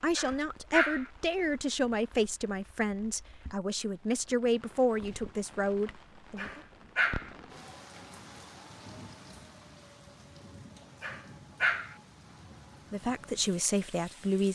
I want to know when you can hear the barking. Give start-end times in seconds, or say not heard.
0.1-1.1, 6.3-7.3, 11.0-11.9.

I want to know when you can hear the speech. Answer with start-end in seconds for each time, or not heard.
0.0-6.6, 12.9-14.5.